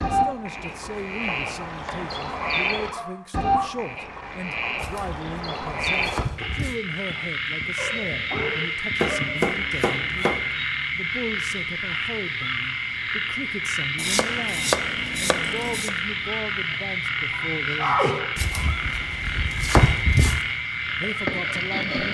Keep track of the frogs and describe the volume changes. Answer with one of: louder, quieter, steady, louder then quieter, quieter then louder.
steady.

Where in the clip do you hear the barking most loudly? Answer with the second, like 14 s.
18 s.